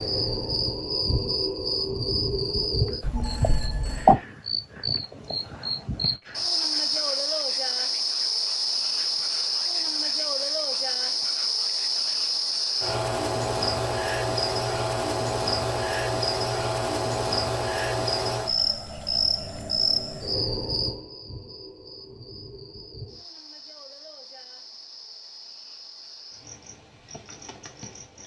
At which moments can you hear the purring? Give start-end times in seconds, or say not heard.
not heard.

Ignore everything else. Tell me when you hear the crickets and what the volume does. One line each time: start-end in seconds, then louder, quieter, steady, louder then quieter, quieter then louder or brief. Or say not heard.
0.0-28.2 quieter.